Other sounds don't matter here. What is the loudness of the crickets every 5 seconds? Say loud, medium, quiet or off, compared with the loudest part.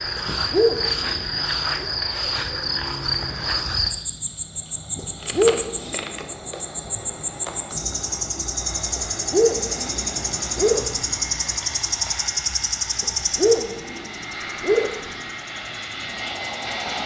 loud, loud, loud, quiet.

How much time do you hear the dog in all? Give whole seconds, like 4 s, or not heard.
7 s.